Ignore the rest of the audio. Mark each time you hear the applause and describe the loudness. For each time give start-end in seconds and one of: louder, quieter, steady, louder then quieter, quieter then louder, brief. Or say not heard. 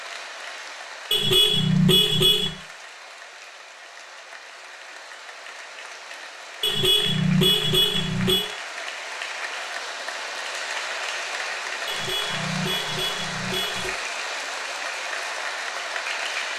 0.0-16.5 louder.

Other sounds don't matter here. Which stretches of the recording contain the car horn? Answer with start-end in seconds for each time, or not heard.
1.1-2.5, 6.6-8.5, 11.8-13.9.